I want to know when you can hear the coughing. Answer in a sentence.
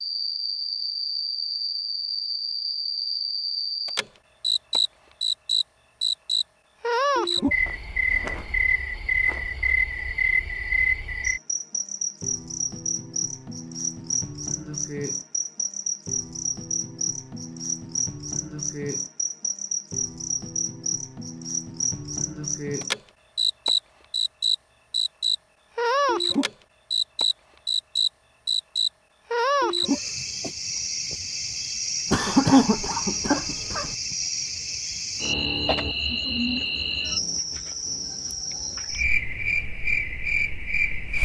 You can hear the coughing from 32.1 to 34.0 s.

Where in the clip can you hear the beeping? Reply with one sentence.
The beeping can't be heard in this clip.